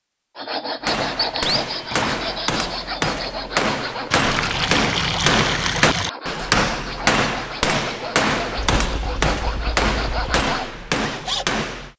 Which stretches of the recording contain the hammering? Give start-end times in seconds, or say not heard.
0.8-11.9.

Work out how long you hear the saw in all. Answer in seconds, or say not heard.
11 s.